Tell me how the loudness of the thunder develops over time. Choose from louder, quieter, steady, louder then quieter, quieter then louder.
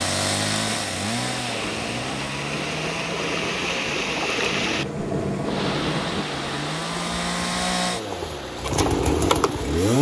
louder.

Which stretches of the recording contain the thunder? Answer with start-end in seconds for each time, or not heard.
1.6-6.2.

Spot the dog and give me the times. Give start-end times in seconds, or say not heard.
not heard.